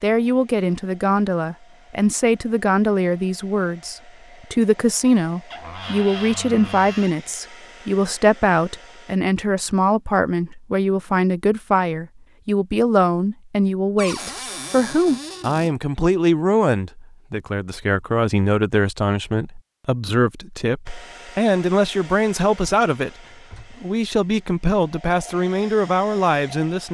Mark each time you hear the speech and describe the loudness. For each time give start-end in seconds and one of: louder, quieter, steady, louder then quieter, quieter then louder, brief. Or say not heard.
0.0-26.8 steady.